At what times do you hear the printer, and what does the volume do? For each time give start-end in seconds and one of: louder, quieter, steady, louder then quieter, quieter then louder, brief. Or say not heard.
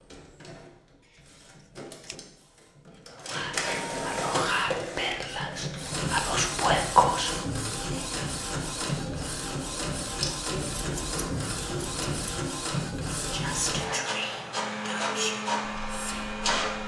0.0-16.8 louder.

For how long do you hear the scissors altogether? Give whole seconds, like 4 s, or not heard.
3 s.